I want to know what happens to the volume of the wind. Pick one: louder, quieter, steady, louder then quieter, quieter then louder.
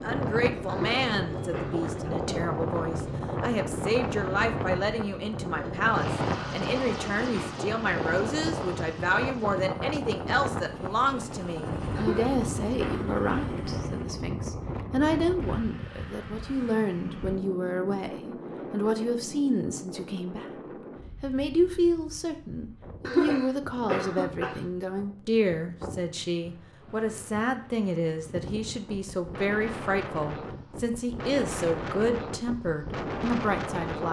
quieter then louder.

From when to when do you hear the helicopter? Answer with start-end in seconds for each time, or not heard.
0.0-14.2.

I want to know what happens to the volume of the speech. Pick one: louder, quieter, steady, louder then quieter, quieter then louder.
steady.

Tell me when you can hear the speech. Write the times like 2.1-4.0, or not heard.
0.0-20.5, 21.2-34.0.